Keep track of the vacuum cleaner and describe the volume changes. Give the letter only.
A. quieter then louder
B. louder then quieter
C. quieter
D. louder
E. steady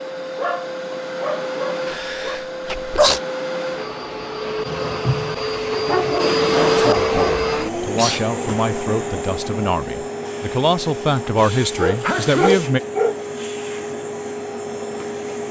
B.